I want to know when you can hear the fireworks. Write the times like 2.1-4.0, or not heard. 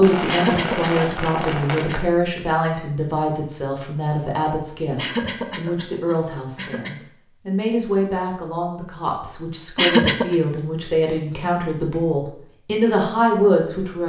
0.0-2.0.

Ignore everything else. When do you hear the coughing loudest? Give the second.
10 s.